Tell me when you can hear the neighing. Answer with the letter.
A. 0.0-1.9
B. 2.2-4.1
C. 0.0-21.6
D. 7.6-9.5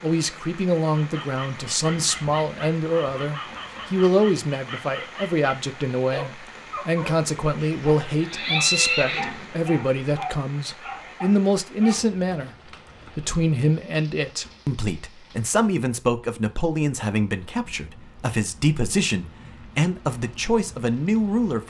D.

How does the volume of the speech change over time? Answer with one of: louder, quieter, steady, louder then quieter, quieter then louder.
steady.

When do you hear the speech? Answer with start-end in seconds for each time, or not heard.
0.0-21.6.